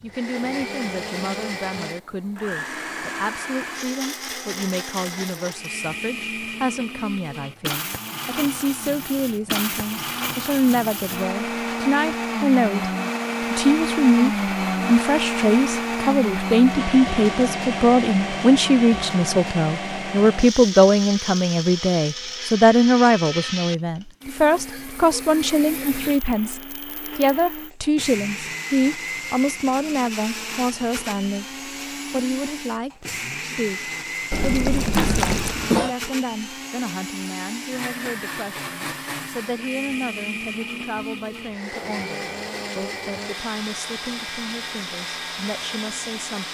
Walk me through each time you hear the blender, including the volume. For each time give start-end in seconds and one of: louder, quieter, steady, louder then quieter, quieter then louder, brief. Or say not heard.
0.0-46.4 louder then quieter.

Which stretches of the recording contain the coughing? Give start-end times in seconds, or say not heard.
34.9-36.0.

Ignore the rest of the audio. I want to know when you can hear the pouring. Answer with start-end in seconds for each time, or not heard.
34.3-35.6.